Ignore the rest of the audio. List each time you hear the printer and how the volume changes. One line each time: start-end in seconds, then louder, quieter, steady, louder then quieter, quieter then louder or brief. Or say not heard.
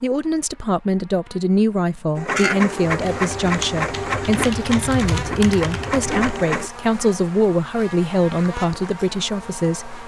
2.1-6.7 quieter then louder.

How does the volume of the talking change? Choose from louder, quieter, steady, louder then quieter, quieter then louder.
steady.